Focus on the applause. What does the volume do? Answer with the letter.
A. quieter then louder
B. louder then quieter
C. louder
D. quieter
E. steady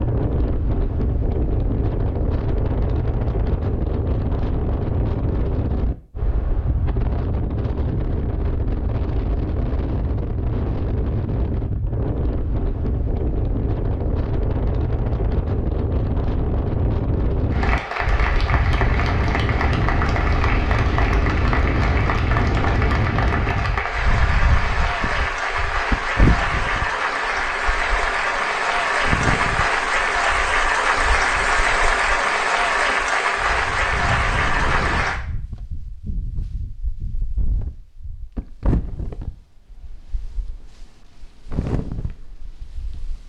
C.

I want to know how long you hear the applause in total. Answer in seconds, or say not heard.
18 s.